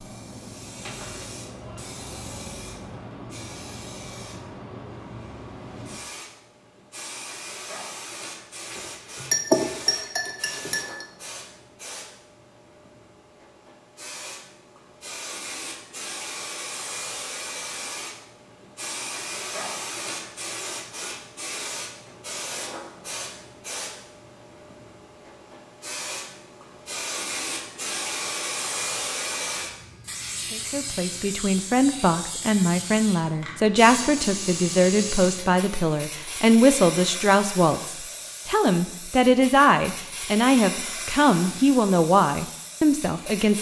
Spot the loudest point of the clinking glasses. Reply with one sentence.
The loudest moment of the clinking glasses is at 9 seconds.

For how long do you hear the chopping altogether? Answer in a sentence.
You can't hear the chopping here.